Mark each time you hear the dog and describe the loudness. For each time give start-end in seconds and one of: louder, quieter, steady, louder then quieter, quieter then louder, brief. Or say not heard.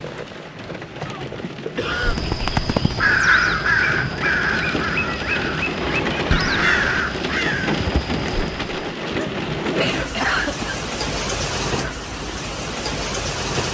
not heard.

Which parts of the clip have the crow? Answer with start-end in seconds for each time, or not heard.
1.9-8.9.